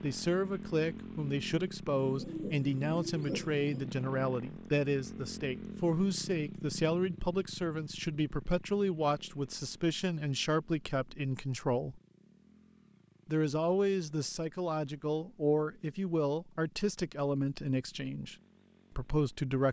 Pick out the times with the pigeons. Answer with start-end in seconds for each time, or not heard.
2.0-3.9.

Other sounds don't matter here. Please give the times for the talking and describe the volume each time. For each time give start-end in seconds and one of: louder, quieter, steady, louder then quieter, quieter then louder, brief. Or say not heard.
0.0-12.0 steady
13.2-19.6 steady.